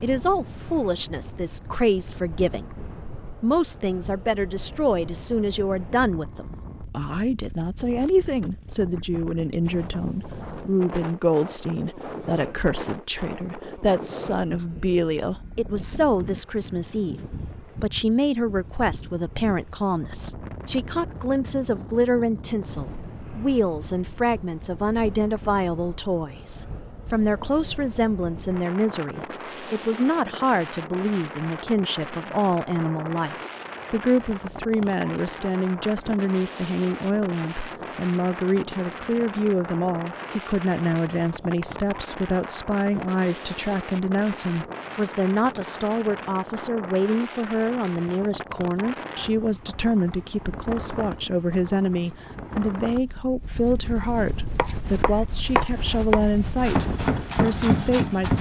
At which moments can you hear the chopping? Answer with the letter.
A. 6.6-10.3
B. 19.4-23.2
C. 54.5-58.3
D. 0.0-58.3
C.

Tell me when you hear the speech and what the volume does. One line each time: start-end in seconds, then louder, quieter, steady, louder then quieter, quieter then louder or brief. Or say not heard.
0.0-58.3 steady.